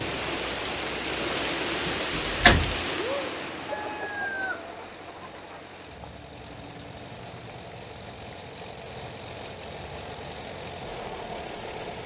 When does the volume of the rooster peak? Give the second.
4 s.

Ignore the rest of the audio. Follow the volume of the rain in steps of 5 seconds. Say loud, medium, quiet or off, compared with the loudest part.
loud, quiet, quiet.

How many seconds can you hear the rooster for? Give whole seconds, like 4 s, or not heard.
2 s.